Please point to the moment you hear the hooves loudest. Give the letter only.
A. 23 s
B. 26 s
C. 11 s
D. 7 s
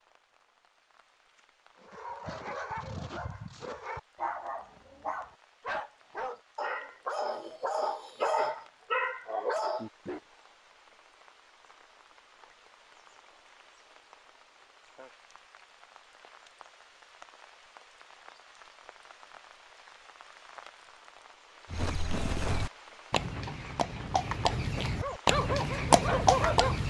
B.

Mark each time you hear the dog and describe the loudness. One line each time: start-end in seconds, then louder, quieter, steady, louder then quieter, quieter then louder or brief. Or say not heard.
1.8-10.2 louder
25.0-26.8 brief.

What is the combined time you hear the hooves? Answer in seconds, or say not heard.
5 s.